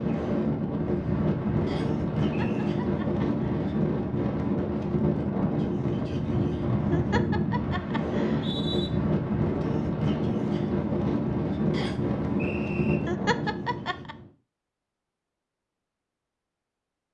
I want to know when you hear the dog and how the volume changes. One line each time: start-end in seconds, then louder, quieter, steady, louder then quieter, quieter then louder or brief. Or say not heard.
not heard.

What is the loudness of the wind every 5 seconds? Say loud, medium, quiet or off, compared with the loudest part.
loud, loud, loud, off.